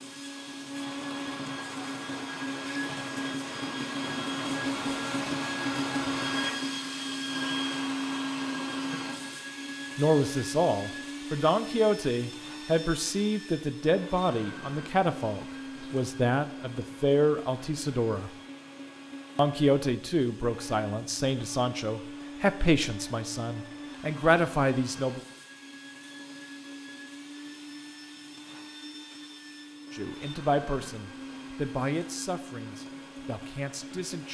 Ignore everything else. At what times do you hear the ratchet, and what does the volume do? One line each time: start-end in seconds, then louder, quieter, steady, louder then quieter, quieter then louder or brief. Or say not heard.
not heard.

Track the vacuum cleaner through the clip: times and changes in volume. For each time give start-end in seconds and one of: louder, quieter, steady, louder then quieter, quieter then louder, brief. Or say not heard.
0.0-34.2 quieter.